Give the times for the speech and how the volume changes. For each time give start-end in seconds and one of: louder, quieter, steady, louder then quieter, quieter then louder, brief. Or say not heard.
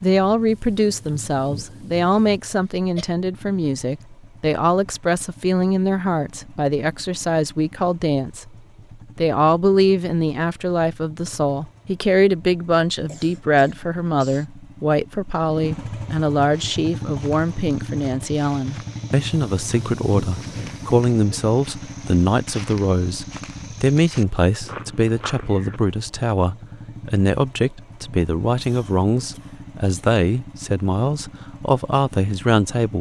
0.0-8.5 steady
9.2-32.9 steady.